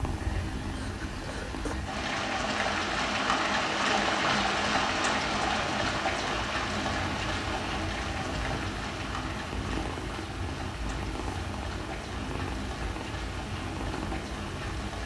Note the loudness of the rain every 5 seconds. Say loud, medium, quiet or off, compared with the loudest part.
loud, loud, medium.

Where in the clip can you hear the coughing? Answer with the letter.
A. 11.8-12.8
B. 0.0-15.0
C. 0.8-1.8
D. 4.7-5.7
C.